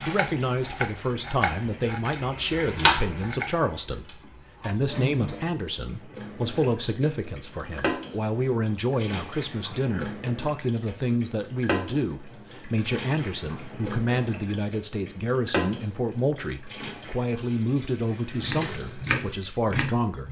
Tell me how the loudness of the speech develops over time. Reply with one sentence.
The loudness of the speech stays about the same.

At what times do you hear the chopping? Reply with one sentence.
The chopping can be heard from 0.0 to 3.6 s and from 18.4 to 20.2 s.